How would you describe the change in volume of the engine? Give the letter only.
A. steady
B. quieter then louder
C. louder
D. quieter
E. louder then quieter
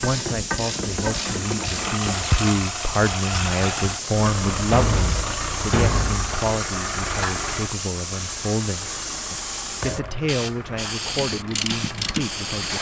D.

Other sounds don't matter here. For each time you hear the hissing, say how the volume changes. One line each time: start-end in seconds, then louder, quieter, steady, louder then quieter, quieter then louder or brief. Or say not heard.
0.0-12.7 steady.